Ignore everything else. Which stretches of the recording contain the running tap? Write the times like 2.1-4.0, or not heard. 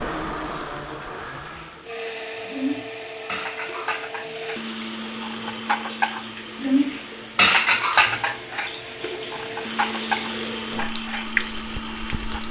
0.0-12.4.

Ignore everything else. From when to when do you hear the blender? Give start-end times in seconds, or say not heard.
0.0-12.4.